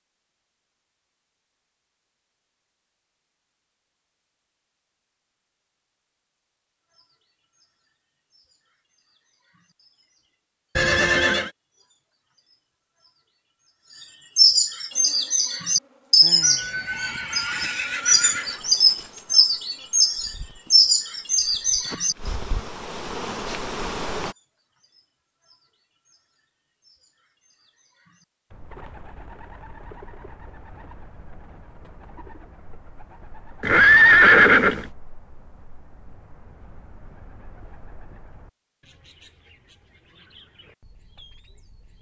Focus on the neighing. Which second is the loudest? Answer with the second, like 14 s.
34 s.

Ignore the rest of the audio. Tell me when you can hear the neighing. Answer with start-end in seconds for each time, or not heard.
10.8-11.5, 16.4-18.6, 33.6-34.9.